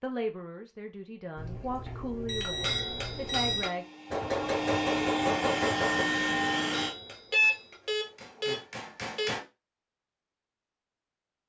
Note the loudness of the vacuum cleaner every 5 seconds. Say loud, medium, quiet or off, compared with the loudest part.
medium, loud, off.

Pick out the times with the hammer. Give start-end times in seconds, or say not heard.
2.5-9.4.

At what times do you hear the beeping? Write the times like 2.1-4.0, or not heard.
1.4-3.7, 7.3-9.3.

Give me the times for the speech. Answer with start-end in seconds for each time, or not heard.
0.0-3.9.